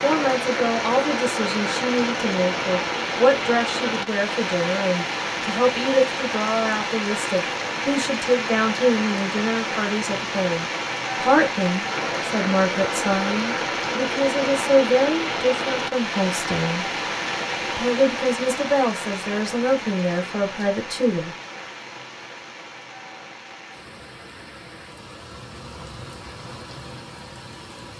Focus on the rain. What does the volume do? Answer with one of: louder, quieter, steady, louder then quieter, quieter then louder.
quieter.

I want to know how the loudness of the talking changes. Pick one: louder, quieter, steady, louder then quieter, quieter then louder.
steady.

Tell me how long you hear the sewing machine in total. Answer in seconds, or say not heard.
not heard.